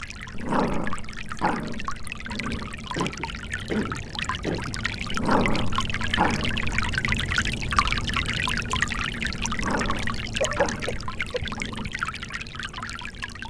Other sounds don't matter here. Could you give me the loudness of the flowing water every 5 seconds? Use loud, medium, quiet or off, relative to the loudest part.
medium, loud, medium.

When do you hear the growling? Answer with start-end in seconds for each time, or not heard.
0.3-2.8, 5.1-7.2, 9.5-11.9.